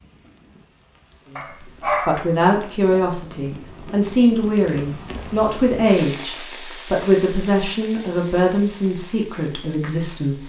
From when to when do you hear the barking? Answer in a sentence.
You can hear the barking from 1.4 to 2.6 s.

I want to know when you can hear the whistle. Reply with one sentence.
The whistle can't be heard in this clip.